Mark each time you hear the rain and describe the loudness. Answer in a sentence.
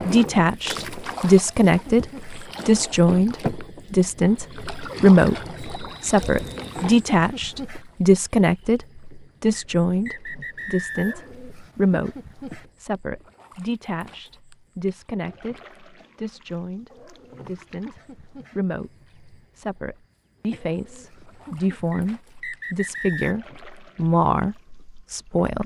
The rain can't be heard in this clip.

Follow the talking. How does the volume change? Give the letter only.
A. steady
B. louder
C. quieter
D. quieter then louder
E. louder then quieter
D.